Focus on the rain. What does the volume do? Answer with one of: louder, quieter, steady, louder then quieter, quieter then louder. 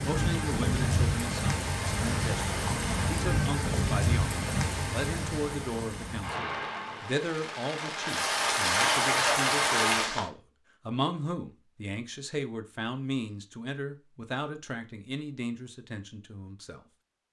quieter then louder.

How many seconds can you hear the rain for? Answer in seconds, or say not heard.
10 s.